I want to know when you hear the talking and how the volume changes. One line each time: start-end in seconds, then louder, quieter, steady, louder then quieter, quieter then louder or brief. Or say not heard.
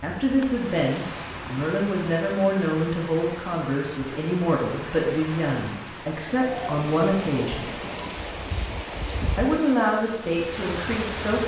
0.0-7.7 steady
9.3-11.4 brief.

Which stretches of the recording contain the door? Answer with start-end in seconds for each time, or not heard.
not heard.